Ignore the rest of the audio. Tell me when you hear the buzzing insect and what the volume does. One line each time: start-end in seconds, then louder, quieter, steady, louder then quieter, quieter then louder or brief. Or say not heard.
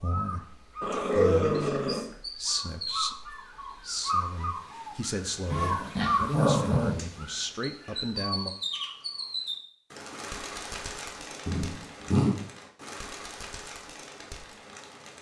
not heard.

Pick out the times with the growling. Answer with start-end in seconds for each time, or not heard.
0.8-2.0, 5.5-7.0, 11.4-12.3.